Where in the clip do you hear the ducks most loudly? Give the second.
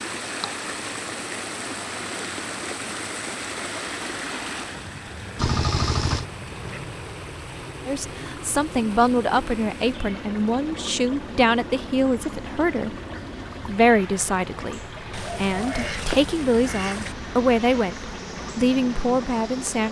6 s.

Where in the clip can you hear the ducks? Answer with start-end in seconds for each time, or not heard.
5.3-6.9, 15.1-17.1.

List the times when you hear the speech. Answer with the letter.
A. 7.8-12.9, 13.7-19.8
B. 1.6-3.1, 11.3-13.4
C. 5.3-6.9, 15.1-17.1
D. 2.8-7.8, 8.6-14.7
A.